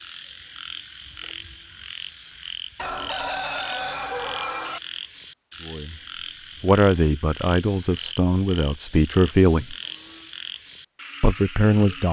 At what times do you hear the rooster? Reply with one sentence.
You can hear the rooster from 2.8 to 4.8 s.